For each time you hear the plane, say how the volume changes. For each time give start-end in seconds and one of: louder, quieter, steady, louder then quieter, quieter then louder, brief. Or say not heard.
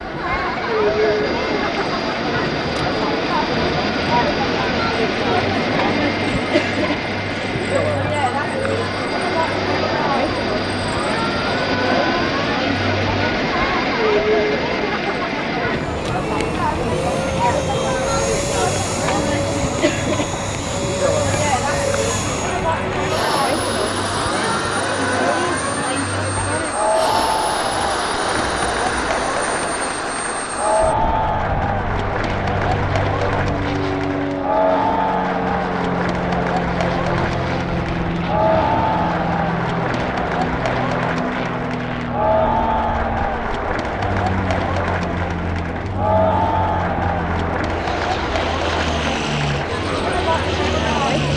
0.0-51.3 steady.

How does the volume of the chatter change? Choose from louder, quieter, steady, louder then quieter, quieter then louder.
steady.